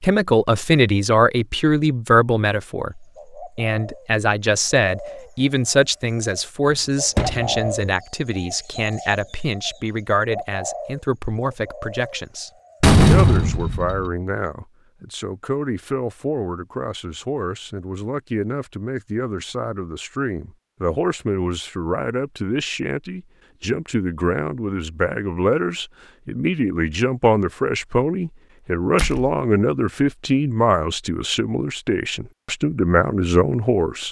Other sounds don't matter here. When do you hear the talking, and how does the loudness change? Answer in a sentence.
The talking can be heard from 0.0 to 34.0 s, getting quieter then louder.